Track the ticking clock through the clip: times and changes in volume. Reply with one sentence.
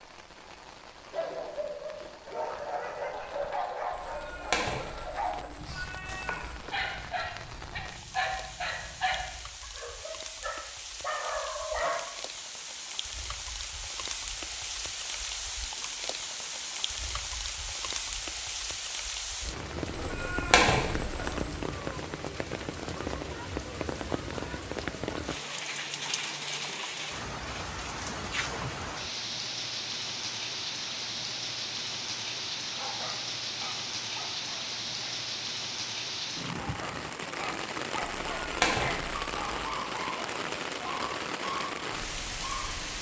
The ticking clock can't be heard in this clip.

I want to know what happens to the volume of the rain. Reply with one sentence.
The loudness of the rain goes up.